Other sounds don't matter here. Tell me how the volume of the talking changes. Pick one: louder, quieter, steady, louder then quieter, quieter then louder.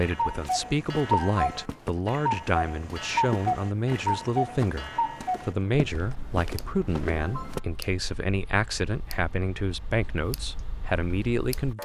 steady.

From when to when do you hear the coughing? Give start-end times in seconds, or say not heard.
1.2-1.8, 7.2-7.7.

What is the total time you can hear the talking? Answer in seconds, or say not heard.
12 s.